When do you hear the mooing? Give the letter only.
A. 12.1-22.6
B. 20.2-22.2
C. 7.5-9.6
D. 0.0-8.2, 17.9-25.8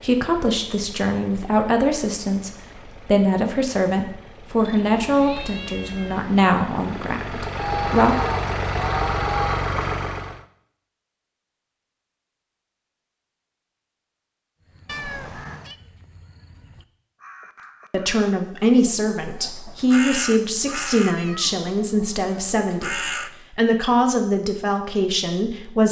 C.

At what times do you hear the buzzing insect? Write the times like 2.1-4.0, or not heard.
not heard.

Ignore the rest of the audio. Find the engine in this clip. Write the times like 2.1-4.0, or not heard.
0.0-10.4.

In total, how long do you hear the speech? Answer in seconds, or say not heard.
16 s.